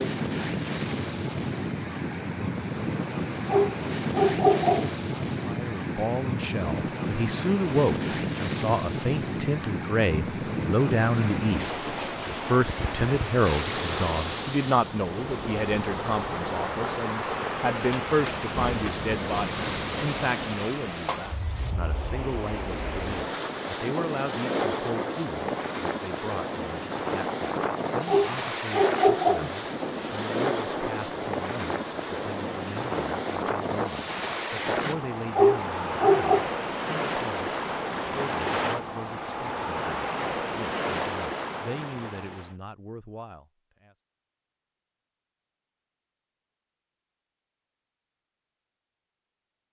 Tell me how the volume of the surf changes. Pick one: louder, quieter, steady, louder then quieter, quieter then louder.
steady.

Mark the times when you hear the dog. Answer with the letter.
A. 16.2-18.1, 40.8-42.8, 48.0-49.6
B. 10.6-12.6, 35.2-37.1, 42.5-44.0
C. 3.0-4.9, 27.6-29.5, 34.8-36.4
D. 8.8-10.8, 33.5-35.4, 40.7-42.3
C.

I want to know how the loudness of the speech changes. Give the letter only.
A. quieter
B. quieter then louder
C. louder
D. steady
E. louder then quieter
A.